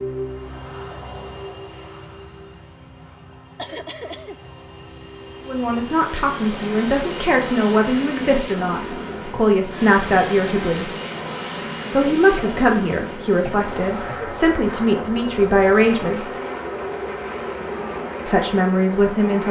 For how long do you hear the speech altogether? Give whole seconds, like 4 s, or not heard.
11 s.